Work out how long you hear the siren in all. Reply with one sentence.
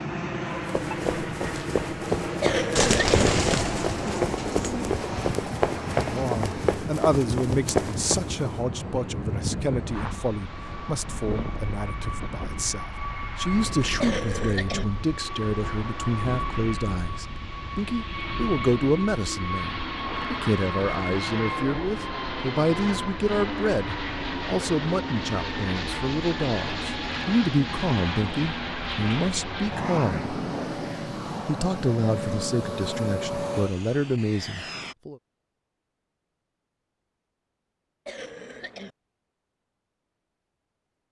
You can't hear the siren here.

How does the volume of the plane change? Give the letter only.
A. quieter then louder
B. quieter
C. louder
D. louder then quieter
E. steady
E.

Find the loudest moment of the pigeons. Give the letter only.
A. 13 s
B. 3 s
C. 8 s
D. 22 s
B.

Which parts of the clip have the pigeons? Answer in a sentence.
You can hear the pigeons from 2.8 to 5.0 s.